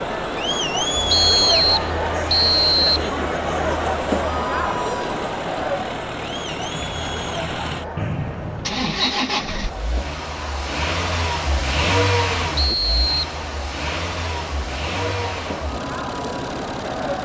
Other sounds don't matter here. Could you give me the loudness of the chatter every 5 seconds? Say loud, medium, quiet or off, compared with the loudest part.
loud, medium, quiet, medium.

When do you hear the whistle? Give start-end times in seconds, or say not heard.
1.1-3.1, 8.0-8.9, 12.6-13.2.